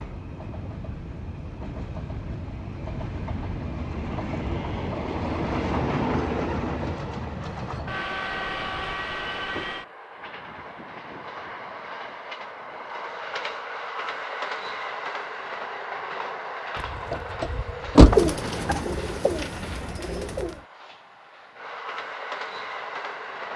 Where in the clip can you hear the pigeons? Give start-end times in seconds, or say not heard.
18.0-20.6.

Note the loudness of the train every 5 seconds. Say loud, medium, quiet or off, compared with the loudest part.
medium, loud, medium, medium, medium.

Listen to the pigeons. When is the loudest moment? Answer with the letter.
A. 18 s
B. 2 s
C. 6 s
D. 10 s
A.